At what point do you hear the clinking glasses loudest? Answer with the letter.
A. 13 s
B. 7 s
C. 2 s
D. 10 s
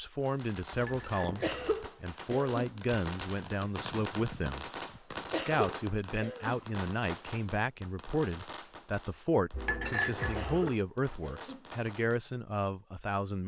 D.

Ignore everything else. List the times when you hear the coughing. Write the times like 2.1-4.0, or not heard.
1.4-2.8, 5.3-6.6, 10.3-11.7.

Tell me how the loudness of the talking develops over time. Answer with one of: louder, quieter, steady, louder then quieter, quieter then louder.
steady.